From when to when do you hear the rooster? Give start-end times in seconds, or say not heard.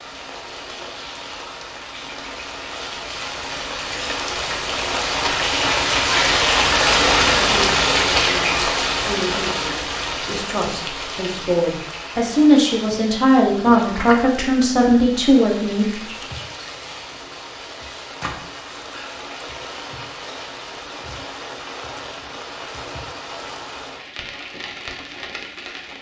not heard.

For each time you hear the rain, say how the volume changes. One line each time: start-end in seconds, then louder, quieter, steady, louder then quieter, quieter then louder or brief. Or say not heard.
0.0-25.9 louder then quieter.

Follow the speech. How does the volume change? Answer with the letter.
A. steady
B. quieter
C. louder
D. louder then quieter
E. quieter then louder
C.